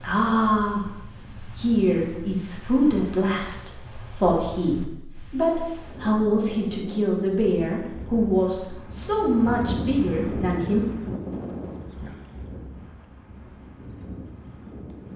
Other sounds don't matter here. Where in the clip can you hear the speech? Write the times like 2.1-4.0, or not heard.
0.0-10.8.